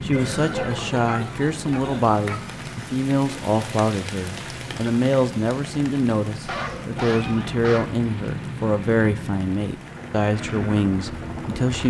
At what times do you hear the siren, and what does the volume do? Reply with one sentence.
The siren can't be heard in this clip.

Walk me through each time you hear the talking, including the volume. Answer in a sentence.
You can hear the talking from 0.0 to 11.8 s, at a steady volume.